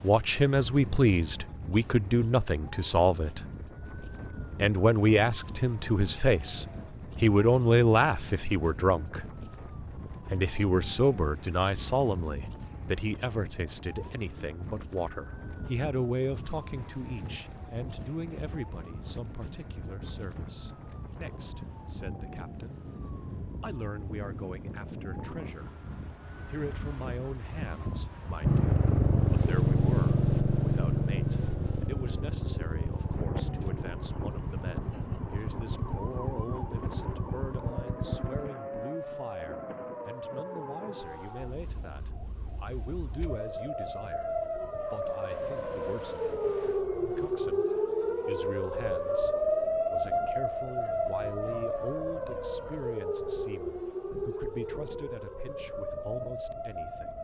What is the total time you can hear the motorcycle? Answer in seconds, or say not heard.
10 s.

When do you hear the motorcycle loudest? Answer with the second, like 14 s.
30 s.